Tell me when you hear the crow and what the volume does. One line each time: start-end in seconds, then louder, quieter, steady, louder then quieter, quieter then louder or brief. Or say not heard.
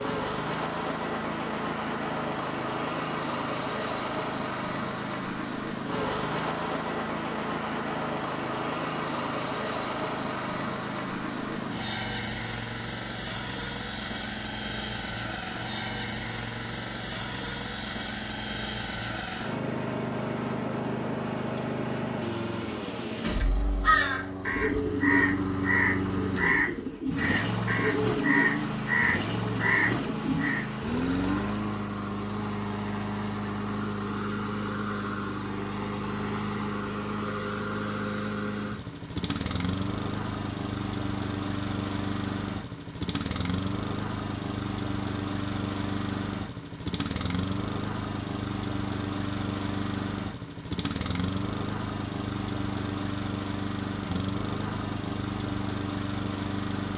23.2-30.6 steady.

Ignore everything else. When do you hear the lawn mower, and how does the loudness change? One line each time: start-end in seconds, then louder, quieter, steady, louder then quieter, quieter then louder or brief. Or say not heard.
0.0-56.9 steady.